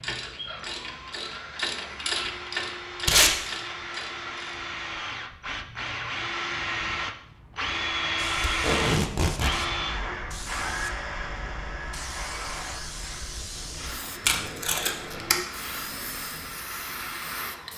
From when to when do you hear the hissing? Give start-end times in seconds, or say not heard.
8.2-17.7.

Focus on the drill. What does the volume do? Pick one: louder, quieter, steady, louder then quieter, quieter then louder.
louder then quieter.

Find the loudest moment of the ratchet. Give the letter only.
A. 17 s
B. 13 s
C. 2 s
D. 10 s
C.